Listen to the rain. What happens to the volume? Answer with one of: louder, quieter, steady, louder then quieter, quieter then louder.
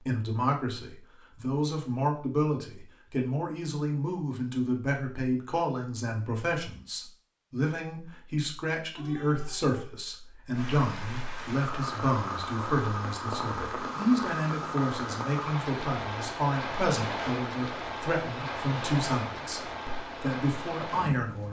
steady.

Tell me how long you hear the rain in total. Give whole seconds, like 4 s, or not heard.
11 s.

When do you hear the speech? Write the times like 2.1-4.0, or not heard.
0.0-21.4.